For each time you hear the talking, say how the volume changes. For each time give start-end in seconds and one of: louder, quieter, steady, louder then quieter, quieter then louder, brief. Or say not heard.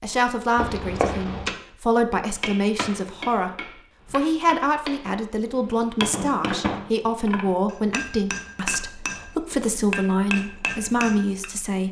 0.0-11.8 steady.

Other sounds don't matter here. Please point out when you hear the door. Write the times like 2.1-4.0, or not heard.
0.6-1.6.